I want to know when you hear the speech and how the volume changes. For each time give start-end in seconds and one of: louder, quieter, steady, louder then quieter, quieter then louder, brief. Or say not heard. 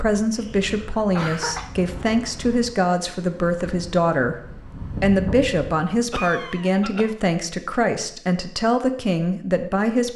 0.0-4.4 steady
5.0-10.1 steady.